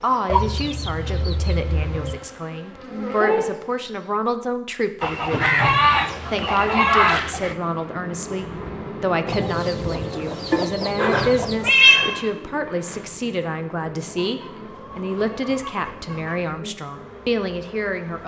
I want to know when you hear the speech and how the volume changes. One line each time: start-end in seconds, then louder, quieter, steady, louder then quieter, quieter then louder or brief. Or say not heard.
0.0-18.2 steady.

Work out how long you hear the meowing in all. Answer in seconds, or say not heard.
2 s.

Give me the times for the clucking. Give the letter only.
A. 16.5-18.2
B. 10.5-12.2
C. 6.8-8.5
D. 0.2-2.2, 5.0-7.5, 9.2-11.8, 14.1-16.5
D.